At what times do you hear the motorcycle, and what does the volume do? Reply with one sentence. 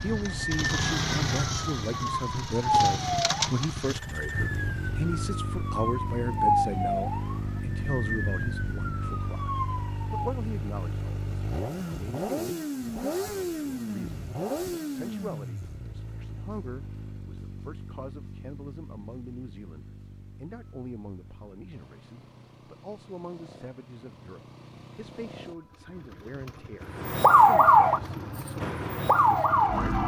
You can hear the motorcycle from 0.0 to 30.0 s, getting quieter then louder.